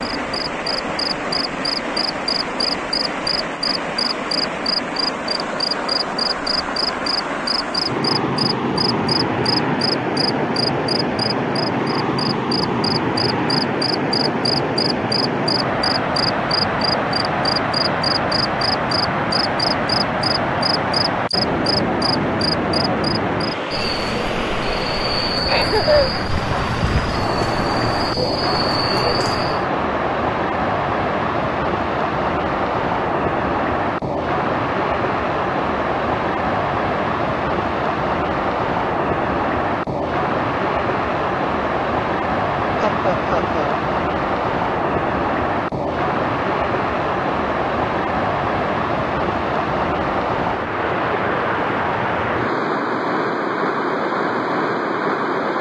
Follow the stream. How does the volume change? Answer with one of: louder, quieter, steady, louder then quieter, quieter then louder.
steady.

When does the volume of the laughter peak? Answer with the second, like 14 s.
26 s.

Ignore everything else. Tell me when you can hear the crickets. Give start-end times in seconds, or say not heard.
0.0-29.6.